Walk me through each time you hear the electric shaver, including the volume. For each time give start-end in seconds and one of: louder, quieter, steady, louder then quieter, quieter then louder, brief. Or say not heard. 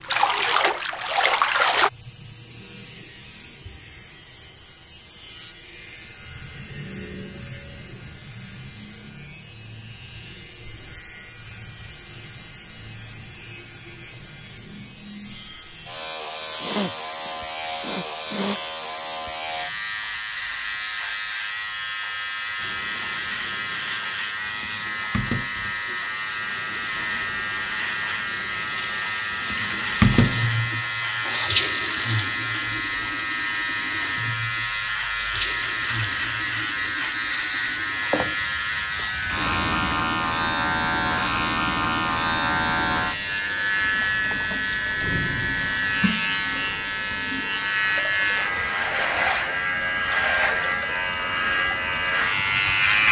0.0-53.0 louder.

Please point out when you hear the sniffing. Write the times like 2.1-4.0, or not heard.
16.6-18.6, 31.2-31.6.